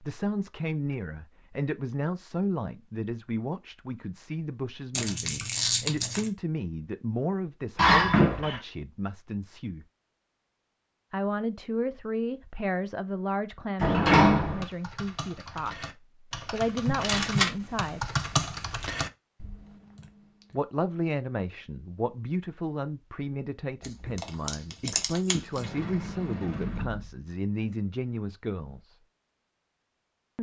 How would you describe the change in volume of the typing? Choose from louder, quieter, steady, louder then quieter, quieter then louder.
louder then quieter.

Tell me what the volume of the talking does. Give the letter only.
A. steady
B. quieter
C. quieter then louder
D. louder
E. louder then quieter
A.